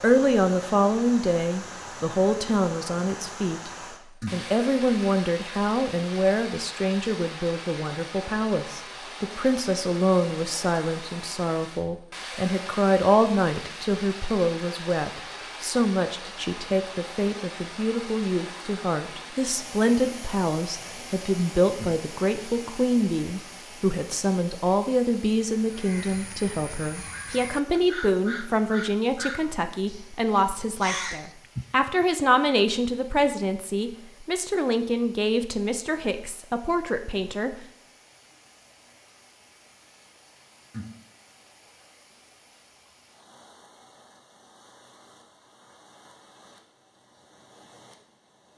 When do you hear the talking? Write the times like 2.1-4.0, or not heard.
0.0-3.7, 4.3-37.5.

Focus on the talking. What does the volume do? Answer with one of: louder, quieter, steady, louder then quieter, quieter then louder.
steady.